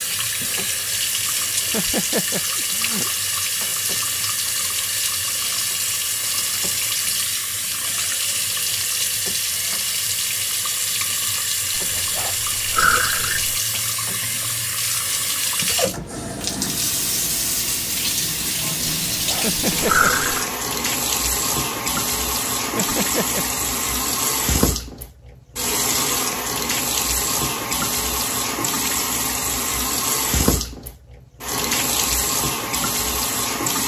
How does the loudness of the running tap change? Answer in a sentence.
The loudness of the running tap stays about the same.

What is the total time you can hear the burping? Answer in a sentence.
You can hear the burping for 3 seconds altogether.